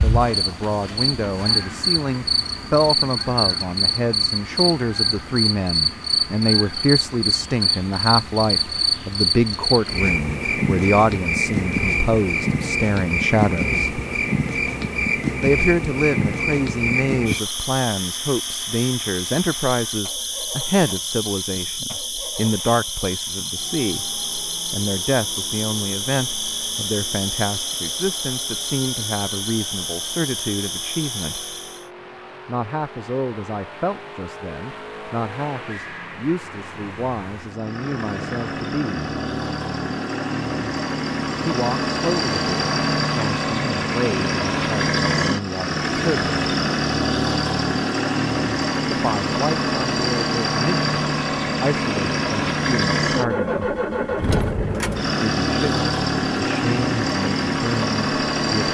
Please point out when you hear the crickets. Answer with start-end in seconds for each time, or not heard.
0.0-31.9.